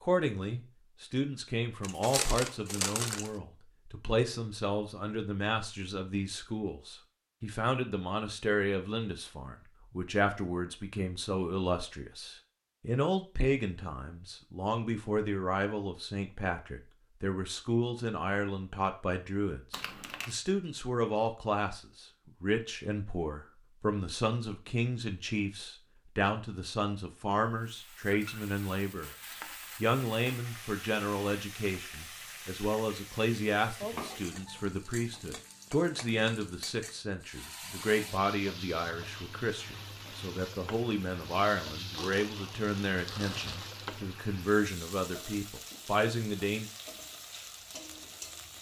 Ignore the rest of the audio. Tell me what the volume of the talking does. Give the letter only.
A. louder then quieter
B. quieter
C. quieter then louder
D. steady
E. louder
D.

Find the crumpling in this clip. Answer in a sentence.
You can hear the crumpling from 1.8 to 3.3 s, from 19.7 to 20.4 s and from 41.9 to 43.9 s.